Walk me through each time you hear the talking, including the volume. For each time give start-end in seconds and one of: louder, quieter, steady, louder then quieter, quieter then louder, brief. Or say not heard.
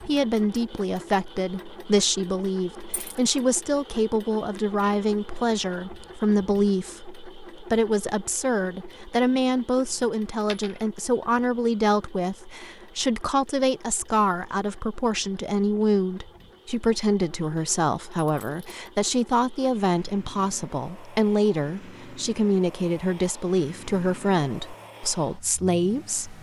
0.1-26.3 steady.